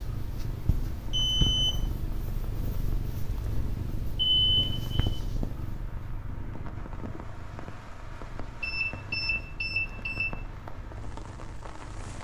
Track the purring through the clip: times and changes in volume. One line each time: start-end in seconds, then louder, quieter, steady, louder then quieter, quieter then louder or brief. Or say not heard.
0.0-12.1 quieter.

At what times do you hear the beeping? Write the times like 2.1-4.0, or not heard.
1.1-1.7, 4.2-5.2, 8.6-10.3.